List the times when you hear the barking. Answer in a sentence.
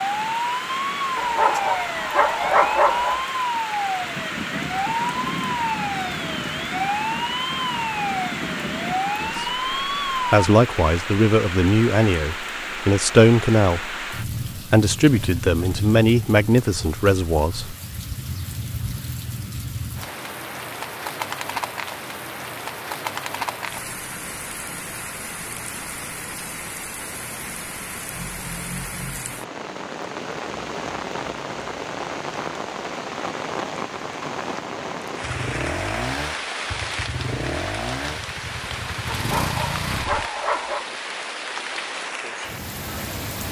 The barking can be heard from 1.1 to 3.2 s and from 39.1 to 40.9 s.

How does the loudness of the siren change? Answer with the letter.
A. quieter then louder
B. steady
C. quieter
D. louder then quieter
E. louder
B.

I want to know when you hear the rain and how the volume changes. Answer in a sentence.
The rain can be heard from 0.0 to 43.4 s, at a steady volume.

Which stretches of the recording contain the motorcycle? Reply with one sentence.
You can hear the motorcycle from 35.2 to 40.3 s.